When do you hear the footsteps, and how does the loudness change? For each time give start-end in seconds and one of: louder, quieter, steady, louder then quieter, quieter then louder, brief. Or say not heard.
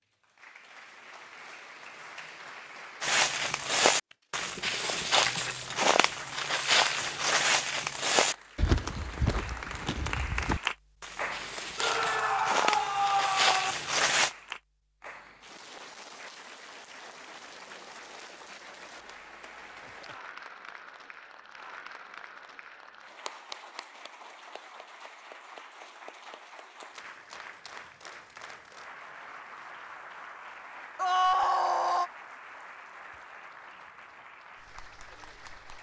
3.0-14.3 quieter then louder.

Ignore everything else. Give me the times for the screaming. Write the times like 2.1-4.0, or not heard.
11.8-13.8, 30.9-32.1.